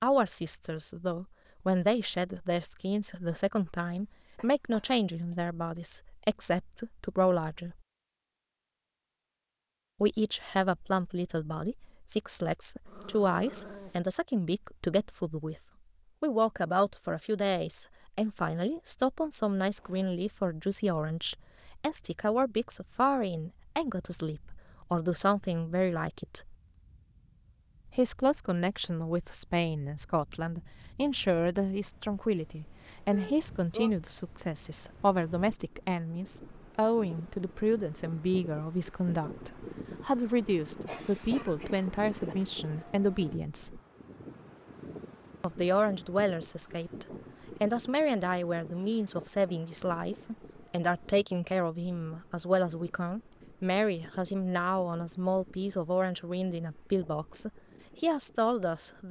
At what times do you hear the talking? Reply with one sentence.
You can hear the talking from 0.0 to 7.8 s, from 10.0 to 15.6 s, from 16.2 to 26.6 s, from 27.9 to 43.8 s and from 45.4 to 59.0 s.